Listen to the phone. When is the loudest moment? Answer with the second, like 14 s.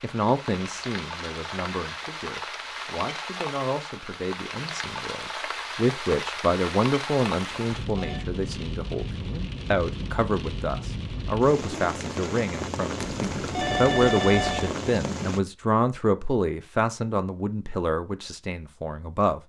14 s.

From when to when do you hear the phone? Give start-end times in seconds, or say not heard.
7.4-8.2, 12.9-14.8.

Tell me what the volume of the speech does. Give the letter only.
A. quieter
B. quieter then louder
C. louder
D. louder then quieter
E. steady
C.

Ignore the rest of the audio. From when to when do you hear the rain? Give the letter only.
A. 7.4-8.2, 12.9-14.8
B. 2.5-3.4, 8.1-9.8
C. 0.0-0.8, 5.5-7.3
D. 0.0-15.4
D.